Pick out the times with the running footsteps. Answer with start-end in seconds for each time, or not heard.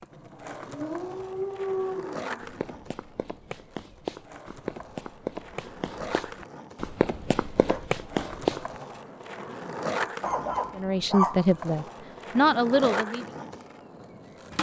2.4-9.0.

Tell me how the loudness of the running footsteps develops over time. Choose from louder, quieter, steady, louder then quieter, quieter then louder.
louder.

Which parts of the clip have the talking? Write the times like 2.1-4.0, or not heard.
10.8-13.2.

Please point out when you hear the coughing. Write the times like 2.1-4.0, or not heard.
not heard.